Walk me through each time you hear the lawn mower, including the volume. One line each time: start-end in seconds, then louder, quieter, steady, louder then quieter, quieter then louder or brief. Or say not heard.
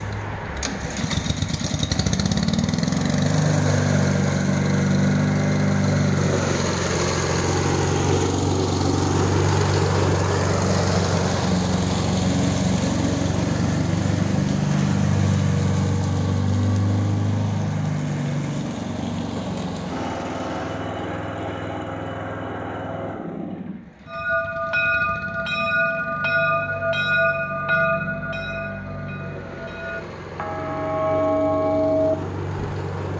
0.0-33.1 quieter.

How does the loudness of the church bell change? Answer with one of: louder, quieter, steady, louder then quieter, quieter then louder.
quieter then louder.